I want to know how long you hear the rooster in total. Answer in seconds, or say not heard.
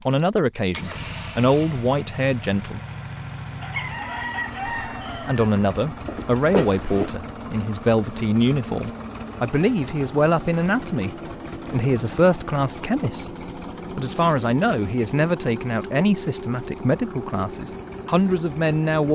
2 s.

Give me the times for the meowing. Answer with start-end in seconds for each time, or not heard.
6.0-7.2.